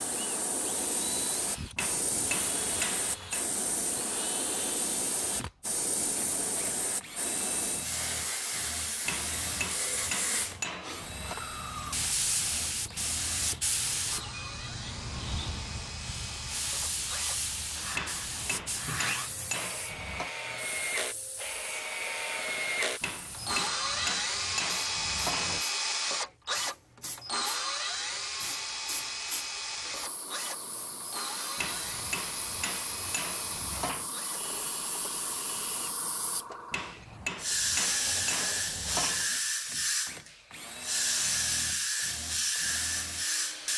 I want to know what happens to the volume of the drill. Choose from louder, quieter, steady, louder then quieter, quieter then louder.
louder then quieter.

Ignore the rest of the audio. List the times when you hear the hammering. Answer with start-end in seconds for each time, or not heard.
1.8-3.5, 9.1-11.3, 17.9-20.3, 23.0-25.6, 31.6-34.1, 36.7-39.3.